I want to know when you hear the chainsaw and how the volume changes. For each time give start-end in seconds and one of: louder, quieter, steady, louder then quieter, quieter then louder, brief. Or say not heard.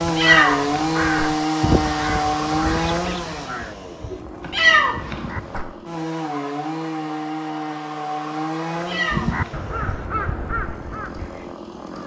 0.0-12.0 quieter.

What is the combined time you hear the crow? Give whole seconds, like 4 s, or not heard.
8 s.